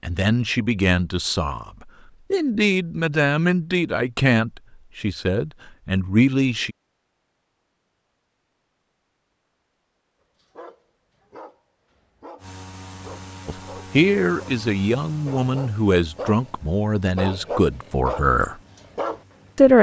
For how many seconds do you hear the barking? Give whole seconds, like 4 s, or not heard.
8 s.